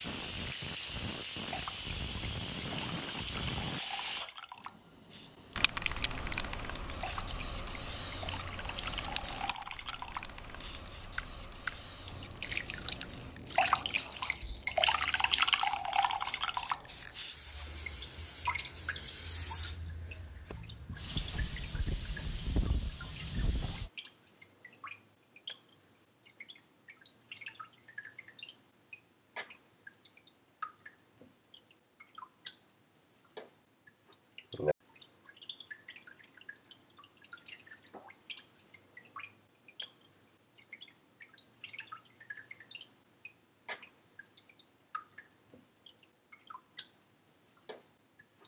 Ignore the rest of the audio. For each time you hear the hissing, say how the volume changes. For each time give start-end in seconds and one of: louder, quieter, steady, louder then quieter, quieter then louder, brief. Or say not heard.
0.0-23.9 quieter then louder.